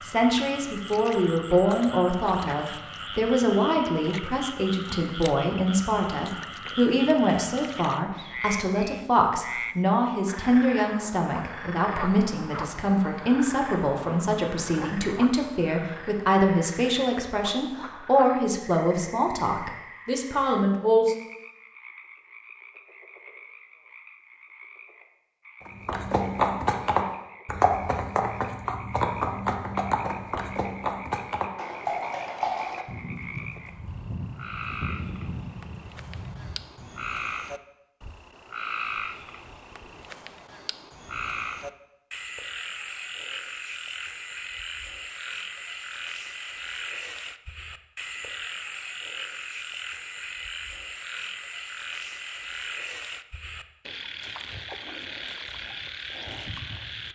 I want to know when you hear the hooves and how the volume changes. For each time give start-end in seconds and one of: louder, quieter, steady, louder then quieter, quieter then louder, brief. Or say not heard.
25.6-37.0 quieter.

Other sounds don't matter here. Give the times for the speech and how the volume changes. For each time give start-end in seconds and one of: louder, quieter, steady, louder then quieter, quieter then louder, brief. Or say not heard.
0.0-21.1 steady.